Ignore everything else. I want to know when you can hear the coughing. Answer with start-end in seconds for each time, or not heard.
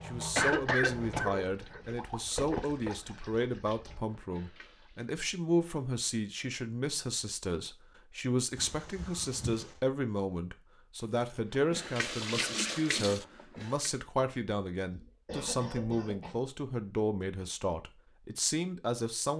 0.3-1.8, 8.6-9.8, 14.9-16.4.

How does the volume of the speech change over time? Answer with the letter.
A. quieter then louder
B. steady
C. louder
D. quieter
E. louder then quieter
B.